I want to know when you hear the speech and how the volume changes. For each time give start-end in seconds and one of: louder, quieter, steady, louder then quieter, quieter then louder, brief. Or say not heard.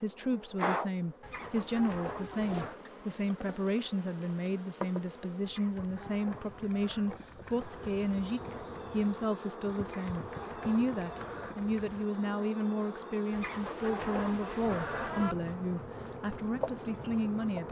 0.0-17.6 steady.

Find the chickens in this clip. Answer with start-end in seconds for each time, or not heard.
1.2-2.8, 5.5-7.1, 9.8-11.6, 13.3-15.3.